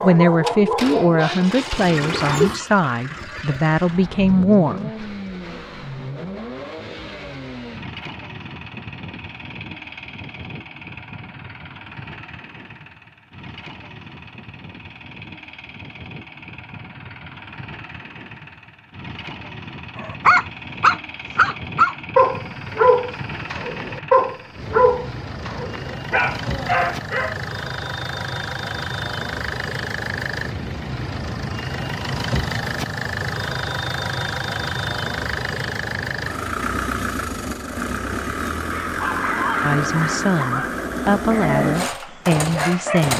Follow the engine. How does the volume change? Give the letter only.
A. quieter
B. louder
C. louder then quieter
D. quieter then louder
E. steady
D.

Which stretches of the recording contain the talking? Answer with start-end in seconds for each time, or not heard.
0.0-5.0, 39.6-43.1.